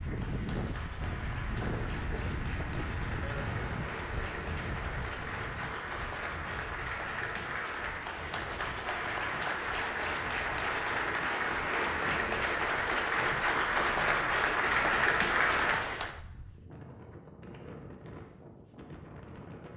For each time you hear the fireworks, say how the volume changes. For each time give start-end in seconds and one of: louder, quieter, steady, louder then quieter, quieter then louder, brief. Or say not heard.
not heard.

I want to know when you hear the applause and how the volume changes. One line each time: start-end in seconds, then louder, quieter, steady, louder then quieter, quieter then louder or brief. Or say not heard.
0.0-16.2 louder.